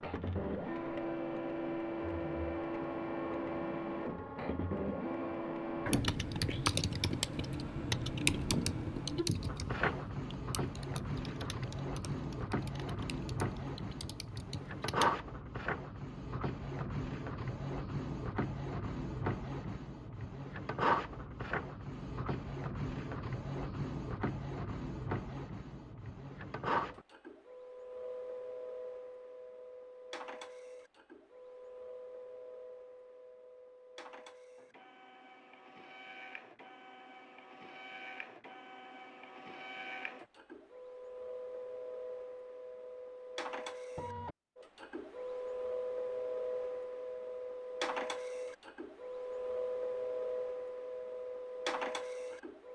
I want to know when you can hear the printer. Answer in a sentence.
You can hear the printer from 0.0 to 52.7 s.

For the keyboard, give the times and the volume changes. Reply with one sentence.
You can hear the keyboard from 5.8 to 15.1 s, getting quieter.